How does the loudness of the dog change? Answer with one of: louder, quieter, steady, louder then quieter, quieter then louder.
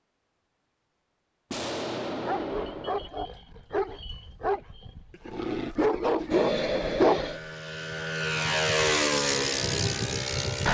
louder.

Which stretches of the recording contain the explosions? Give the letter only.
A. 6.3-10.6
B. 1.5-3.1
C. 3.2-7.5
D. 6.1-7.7
B.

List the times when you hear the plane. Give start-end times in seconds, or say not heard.
6.3-10.6.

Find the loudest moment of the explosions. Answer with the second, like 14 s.
2 s.